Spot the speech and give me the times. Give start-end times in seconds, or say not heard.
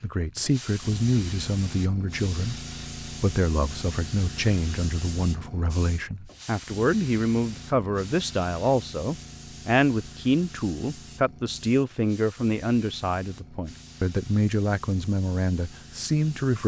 0.0-16.6.